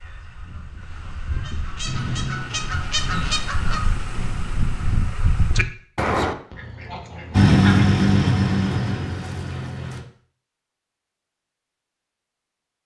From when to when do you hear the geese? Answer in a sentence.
The geese can be heard from 0.0 to 7.8 s.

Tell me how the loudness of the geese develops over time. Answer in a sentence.
The loudness of the geese goes up.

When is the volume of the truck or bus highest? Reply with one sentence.
The loudest moment of the truck or bus is at 8 seconds.